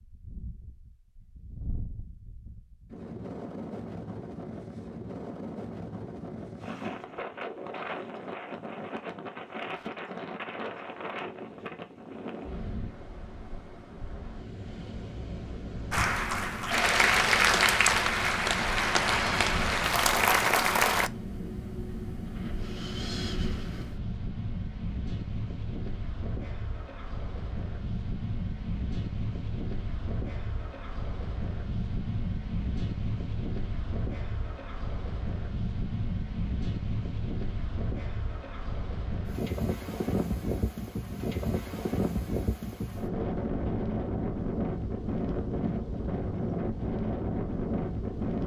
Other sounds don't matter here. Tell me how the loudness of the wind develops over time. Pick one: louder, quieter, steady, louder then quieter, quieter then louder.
louder.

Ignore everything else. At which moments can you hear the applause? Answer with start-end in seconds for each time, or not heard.
15.9-21.1.